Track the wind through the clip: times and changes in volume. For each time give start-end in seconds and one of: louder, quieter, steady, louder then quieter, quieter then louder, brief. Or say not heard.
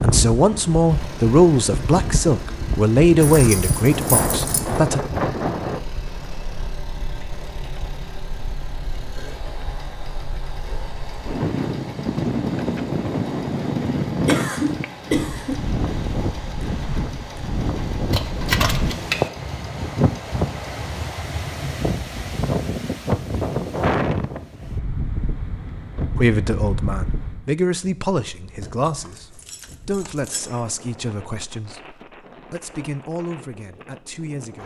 0.0-34.6 quieter.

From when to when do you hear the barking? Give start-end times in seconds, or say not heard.
not heard.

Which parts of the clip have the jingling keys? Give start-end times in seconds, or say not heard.
3.2-4.8, 18.1-19.2, 28.6-30.5.